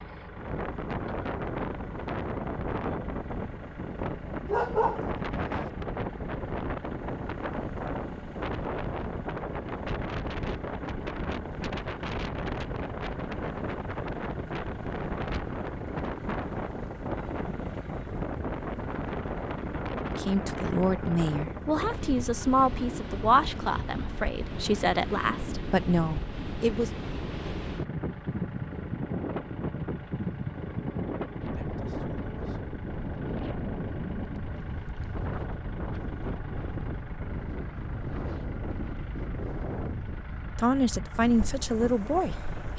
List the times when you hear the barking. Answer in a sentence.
You can hear the barking from 4.5 to 5.7 s.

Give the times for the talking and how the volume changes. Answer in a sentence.
The talking can be heard from 20.1 to 26.9 s, at a steady volume; and briefly from 40.5 to 42.7 s.